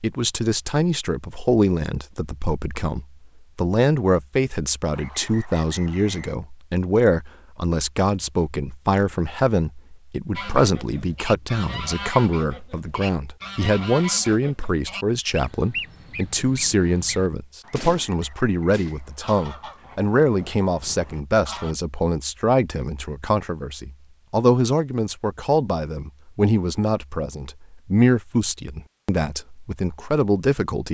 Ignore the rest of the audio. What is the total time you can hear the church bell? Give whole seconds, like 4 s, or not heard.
not heard.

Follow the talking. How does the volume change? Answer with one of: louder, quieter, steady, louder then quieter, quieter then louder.
steady.